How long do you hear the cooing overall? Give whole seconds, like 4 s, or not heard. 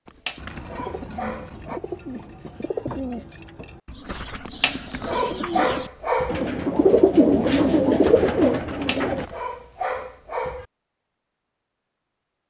9 s.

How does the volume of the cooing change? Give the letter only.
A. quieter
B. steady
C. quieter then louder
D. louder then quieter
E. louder
E.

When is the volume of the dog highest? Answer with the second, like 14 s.
6 s.